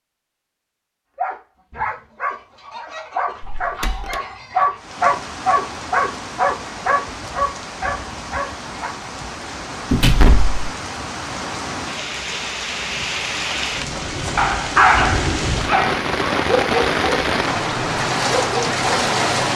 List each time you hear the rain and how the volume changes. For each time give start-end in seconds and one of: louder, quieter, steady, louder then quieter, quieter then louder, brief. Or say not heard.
4.8-19.5 louder.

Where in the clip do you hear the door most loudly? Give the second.
10 s.